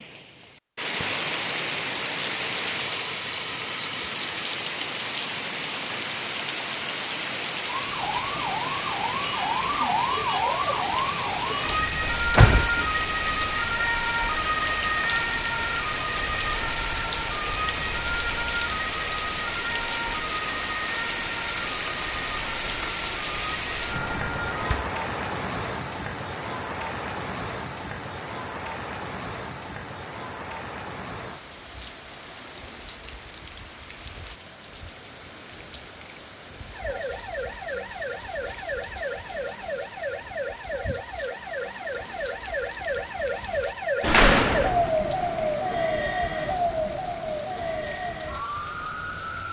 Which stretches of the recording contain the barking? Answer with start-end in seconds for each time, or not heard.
not heard.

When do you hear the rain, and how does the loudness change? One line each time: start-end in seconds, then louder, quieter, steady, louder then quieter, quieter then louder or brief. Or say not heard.
0.0-49.4 quieter.